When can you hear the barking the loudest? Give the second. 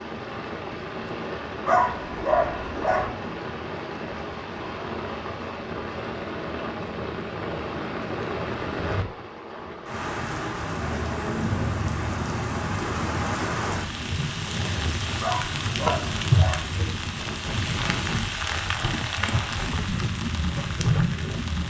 2 s.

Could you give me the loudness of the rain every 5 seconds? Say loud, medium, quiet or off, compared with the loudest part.
medium, medium, loud, loud, loud.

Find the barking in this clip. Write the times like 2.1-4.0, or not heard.
1.6-3.1, 15.2-16.6.